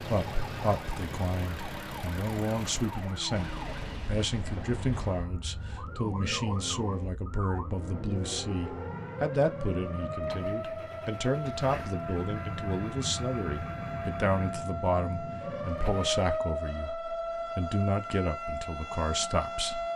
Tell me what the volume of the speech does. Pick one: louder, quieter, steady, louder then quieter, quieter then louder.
steady.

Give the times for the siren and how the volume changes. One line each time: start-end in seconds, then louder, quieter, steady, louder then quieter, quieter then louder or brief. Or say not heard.
0.2-19.9 louder.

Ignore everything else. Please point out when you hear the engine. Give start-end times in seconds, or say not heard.
0.0-16.4.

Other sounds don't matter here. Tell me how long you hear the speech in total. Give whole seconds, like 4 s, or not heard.
20 s.